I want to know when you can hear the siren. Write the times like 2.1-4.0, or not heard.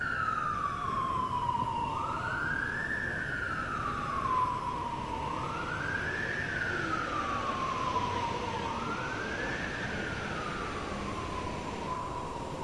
0.0-12.6.